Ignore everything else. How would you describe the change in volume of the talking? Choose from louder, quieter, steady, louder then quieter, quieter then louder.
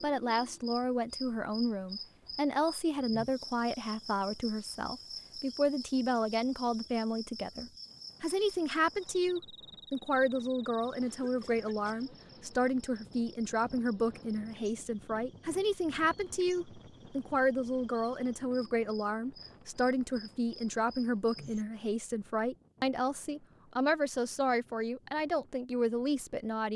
steady.